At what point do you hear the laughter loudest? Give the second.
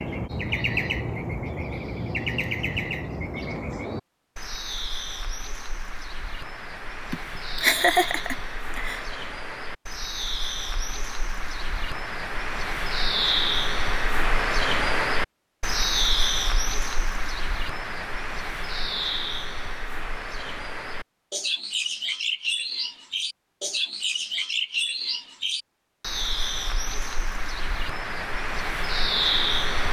8 s.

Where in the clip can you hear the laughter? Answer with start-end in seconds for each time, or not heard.
7.1-9.1.